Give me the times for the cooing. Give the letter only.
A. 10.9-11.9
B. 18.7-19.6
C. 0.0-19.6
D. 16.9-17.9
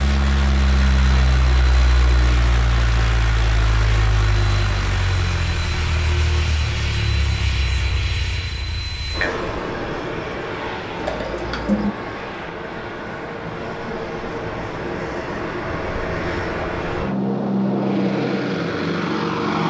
A.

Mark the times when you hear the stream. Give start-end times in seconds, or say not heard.
not heard.